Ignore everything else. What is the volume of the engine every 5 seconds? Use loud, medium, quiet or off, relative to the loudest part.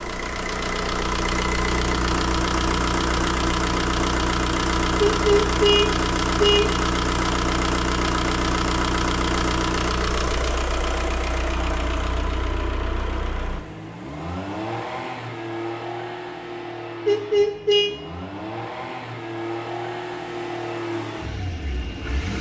loud, loud, medium, medium, medium.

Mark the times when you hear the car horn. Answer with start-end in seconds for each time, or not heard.
5.0-6.8, 17.1-17.9.